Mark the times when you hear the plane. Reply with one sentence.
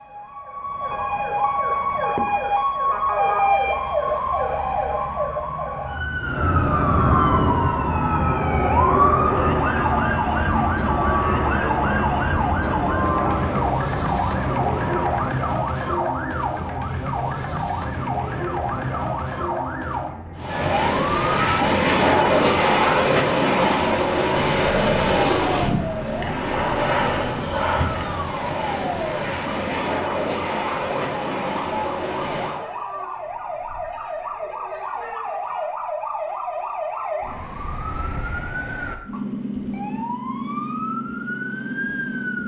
You can hear the plane from 6.2 to 15.3 s and from 20.4 to 32.6 s.